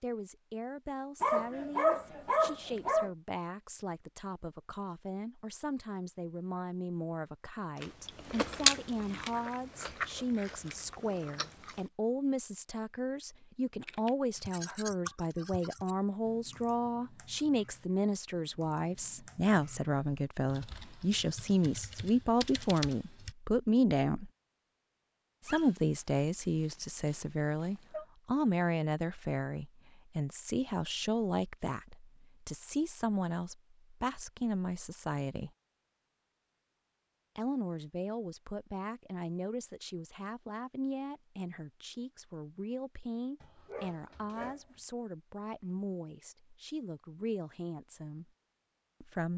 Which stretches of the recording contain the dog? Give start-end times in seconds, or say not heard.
1.2-3.1, 25.4-28.1, 43.4-44.8.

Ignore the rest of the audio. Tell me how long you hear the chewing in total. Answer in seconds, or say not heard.
4 s.